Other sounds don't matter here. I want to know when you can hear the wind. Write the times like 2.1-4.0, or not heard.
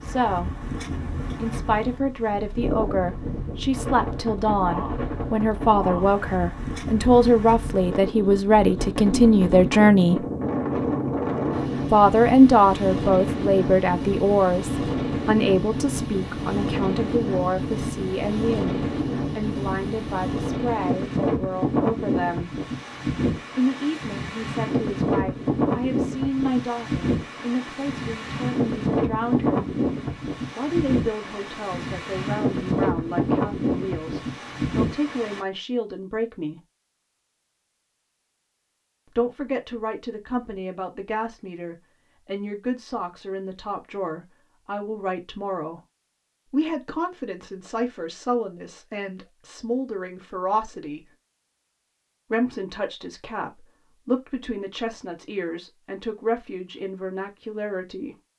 0.0-35.4.